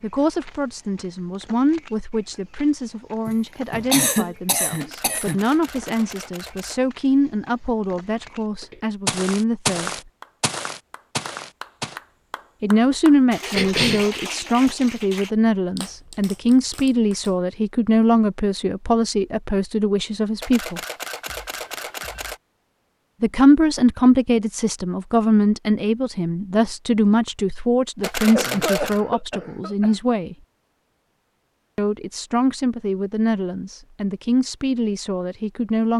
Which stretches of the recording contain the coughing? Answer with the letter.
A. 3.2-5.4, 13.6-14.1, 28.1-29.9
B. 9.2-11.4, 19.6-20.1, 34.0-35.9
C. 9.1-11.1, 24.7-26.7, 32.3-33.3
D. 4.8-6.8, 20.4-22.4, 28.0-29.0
A.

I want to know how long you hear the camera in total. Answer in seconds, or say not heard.
5 s.